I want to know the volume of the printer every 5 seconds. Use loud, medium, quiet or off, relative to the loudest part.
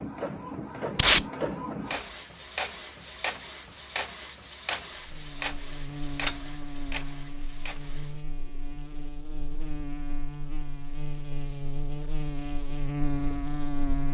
loud, loud, off.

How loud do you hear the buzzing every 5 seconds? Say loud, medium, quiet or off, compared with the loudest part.
off, medium, loud.